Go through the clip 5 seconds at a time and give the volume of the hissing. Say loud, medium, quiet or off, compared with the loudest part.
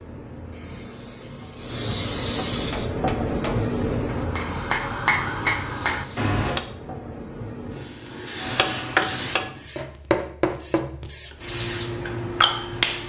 loud, medium, loud.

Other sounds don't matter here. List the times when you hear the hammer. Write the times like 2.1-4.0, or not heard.
2.6-6.6, 8.4-11.1.